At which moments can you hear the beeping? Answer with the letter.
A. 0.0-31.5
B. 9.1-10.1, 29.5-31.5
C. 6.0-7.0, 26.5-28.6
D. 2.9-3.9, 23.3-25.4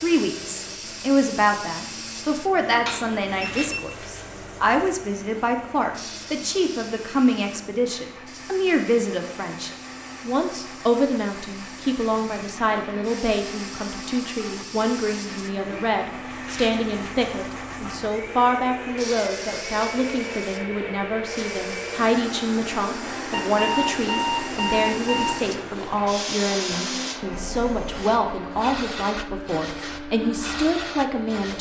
D.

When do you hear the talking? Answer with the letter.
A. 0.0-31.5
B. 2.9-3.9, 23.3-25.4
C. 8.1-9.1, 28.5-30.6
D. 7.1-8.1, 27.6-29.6
A.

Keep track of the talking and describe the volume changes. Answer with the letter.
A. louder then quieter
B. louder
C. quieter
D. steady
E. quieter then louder
D.